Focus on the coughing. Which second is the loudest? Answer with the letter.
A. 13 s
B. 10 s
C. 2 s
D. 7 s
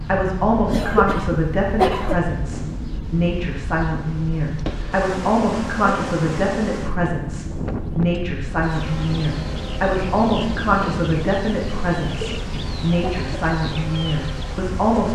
C.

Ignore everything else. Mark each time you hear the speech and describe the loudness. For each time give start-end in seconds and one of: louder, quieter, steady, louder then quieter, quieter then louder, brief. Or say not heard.
0.0-15.1 steady.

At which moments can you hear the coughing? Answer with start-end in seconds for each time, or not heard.
0.7-2.2, 12.0-13.4.